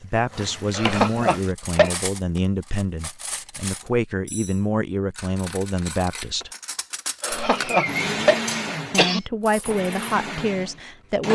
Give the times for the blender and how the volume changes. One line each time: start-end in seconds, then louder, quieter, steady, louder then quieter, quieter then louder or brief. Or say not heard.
7.2-11.3 quieter then louder.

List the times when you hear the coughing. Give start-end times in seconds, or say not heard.
0.8-1.9, 7.2-9.2.